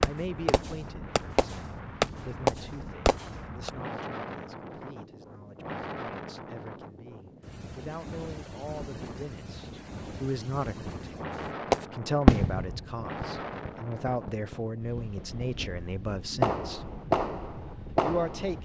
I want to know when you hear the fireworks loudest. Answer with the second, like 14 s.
12 s.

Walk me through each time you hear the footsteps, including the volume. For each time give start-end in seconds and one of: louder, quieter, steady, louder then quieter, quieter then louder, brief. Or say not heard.
not heard.